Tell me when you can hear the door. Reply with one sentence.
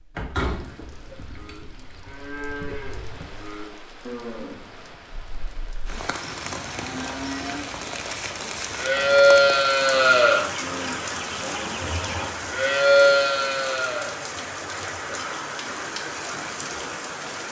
The door can be heard from 0.1 to 1.6 s.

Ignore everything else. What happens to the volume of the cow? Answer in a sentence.
The loudness of the cow goes up.